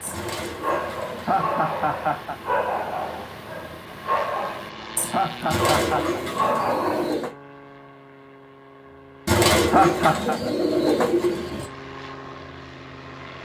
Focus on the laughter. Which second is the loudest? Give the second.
10 s.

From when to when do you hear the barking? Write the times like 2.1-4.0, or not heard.
0.0-7.1.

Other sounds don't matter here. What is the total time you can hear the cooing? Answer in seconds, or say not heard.
6 s.